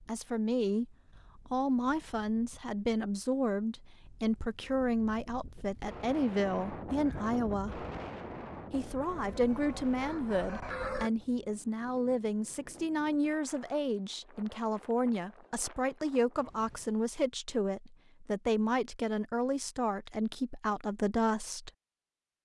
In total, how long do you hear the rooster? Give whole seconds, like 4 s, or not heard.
2 s.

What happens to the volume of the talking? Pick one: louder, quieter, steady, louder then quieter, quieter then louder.
steady.